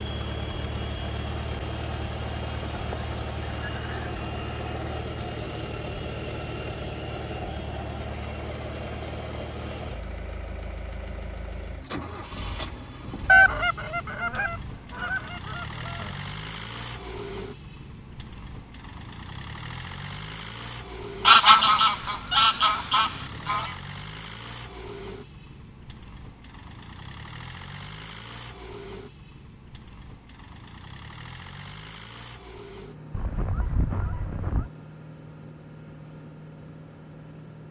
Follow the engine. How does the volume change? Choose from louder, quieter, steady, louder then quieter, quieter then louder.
quieter.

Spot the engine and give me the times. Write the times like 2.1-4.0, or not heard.
0.0-37.6.